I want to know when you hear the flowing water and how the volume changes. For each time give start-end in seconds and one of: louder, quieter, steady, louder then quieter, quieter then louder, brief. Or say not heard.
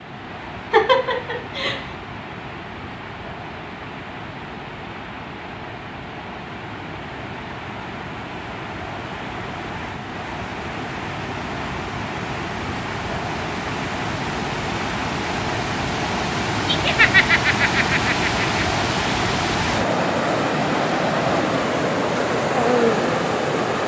0.0-23.8 louder.